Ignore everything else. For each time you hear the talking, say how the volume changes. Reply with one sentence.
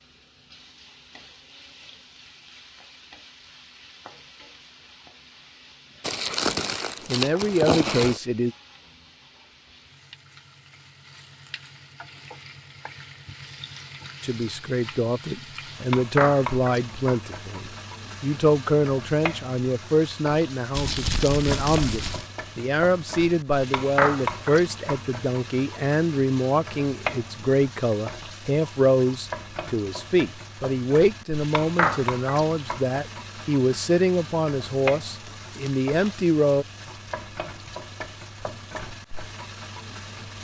You can hear the talking briefly from 7.0 to 8.5 s; and from 14.2 to 36.6 s, at a steady volume.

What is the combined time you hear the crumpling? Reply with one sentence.
The crumpling can be heard for 5 seconds in total.